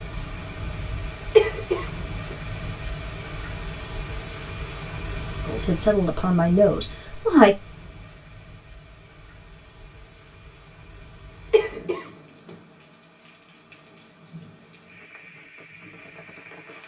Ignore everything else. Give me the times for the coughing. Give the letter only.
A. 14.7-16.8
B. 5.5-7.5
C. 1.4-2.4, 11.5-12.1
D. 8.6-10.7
C.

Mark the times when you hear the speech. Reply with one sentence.
You can hear the speech from 5.5 to 7.5 s.